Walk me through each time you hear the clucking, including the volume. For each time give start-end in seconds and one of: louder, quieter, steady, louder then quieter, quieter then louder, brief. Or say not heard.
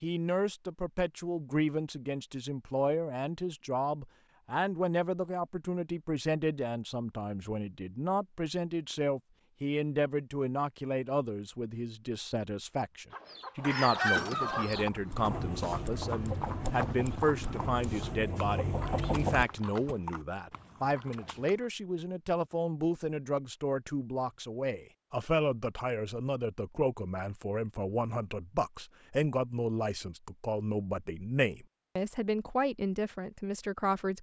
13.1-19.9 quieter then louder.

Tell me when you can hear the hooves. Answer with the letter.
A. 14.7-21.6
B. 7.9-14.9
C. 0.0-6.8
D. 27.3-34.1
A.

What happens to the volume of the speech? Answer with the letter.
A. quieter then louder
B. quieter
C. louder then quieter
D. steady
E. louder
D.